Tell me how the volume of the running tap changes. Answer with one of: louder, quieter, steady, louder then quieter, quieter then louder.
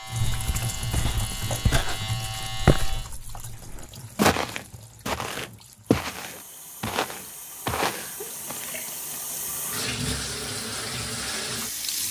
quieter then louder.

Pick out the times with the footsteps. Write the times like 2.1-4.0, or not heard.
0.2-8.7.